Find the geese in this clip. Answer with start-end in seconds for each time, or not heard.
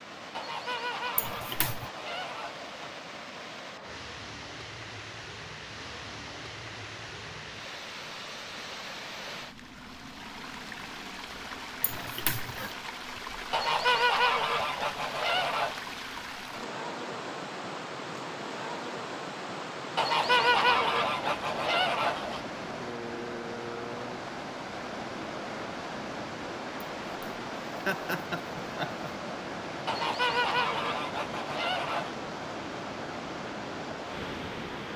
0.3-2.9, 13.5-15.8, 19.9-22.4, 29.9-32.1.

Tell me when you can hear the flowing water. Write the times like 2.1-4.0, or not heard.
0.0-34.9.